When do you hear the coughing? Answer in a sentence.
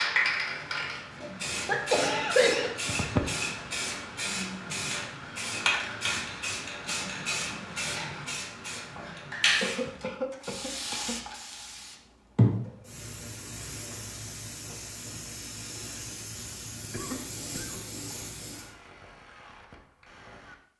The coughing can be heard from 1.2 to 3.2 s, from 9.6 to 11.2 s and from 16.9 to 17.8 s.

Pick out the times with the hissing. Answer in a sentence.
The hissing can be heard from 0.0 to 18.7 s.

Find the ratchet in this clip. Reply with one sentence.
The ratchet can be heard from 18.1 to 20.7 s.